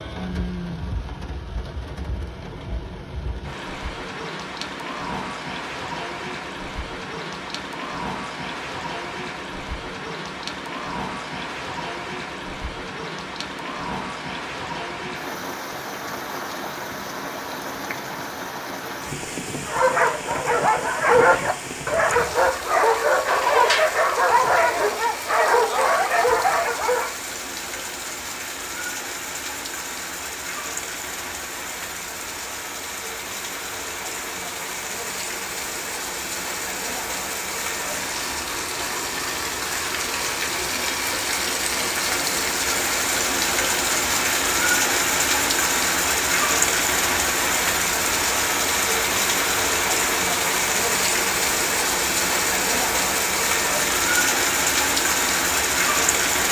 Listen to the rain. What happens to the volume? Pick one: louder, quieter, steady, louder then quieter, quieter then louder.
louder.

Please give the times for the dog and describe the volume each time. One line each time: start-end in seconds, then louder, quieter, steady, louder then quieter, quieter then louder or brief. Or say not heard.
19.6-27.1 steady.